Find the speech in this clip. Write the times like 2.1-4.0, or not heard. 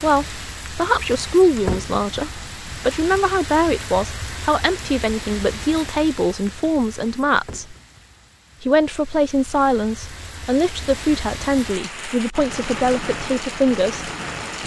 0.0-7.8, 8.6-14.1.